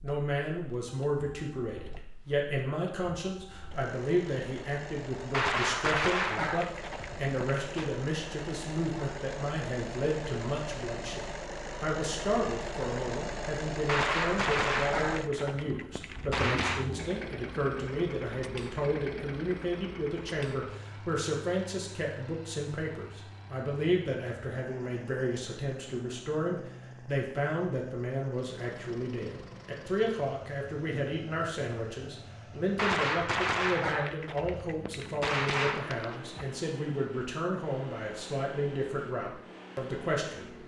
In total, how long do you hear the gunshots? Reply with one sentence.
You can hear the gunshots for 9 seconds altogether.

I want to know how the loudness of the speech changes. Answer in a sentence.
The loudness of the speech stays about the same.